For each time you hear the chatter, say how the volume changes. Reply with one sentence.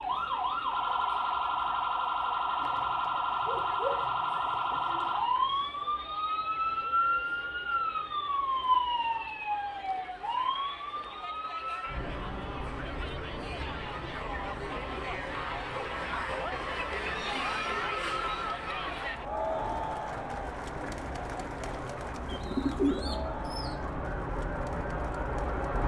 The chatter can be heard from 0.0 to 25.8 s, getting louder then quieter.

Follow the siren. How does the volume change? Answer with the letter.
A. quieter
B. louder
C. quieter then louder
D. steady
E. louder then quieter
C.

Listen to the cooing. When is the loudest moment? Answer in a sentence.
The volume of the cooing peaks at 23 seconds.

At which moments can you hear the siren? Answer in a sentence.
The siren can be heard from 0.0 to 25.8 s.